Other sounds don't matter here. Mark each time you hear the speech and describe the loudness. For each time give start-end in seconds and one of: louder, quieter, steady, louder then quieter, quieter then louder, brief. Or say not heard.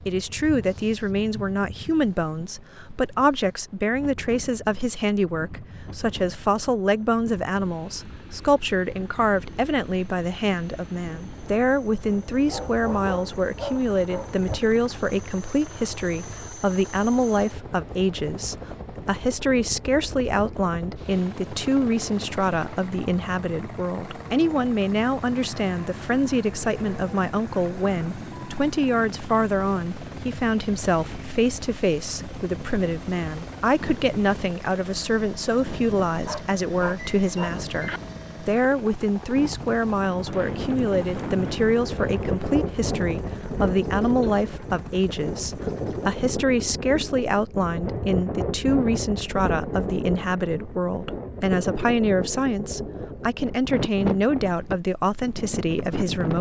0.1-56.3 steady.